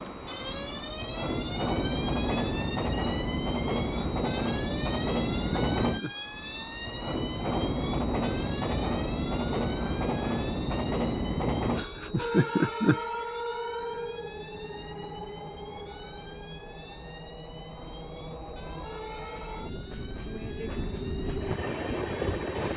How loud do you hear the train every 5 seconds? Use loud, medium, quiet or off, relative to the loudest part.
loud, loud, loud, medium, loud.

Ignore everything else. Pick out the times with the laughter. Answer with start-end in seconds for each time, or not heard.
4.9-6.2, 11.8-13.0.